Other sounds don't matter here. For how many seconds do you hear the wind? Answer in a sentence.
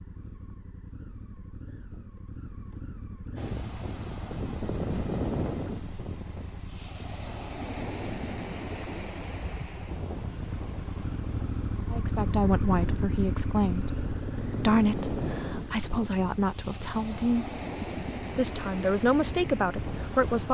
The wind can be heard for 17 seconds in total.